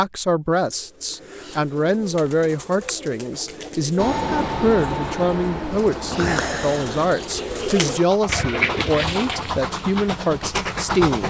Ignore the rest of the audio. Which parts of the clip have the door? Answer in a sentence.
The door can't be heard in this clip.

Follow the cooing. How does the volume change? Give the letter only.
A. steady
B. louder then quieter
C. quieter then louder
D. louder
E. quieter
D.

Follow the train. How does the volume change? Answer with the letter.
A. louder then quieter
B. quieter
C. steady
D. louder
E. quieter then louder
E.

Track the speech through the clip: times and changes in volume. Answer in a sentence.
The speech can be heard from 0.0 to 11.2 s, at a steady volume.